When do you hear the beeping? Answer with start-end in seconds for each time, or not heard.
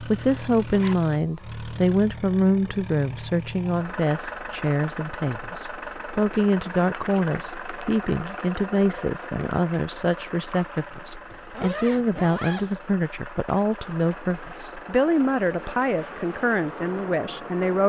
not heard.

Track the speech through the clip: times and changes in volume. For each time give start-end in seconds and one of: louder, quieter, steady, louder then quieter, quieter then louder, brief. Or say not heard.
0.0-17.8 steady.